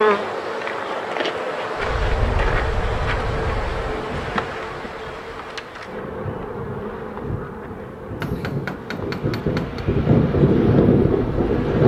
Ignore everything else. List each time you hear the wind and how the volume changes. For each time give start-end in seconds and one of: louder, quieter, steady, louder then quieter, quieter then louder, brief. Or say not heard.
1.8-11.8 quieter then louder.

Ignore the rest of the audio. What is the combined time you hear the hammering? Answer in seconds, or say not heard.
2 s.